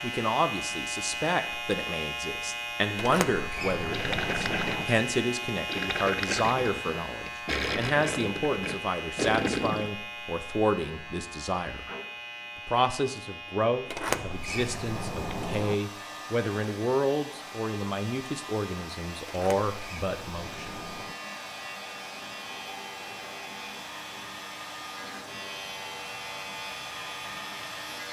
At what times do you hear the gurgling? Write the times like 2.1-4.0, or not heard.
3.9-9.9.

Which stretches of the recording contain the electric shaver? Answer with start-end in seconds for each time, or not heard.
0.0-28.0.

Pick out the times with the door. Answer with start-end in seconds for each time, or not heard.
3.0-4.8, 13.8-15.8, 19.2-21.1.